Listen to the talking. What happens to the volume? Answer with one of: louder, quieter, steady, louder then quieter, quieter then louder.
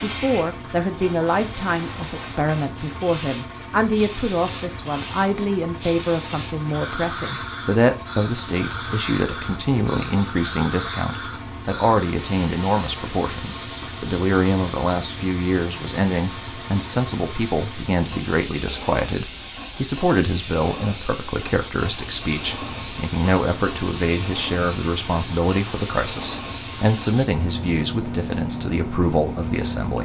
steady.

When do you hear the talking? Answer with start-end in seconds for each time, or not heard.
0.0-30.0.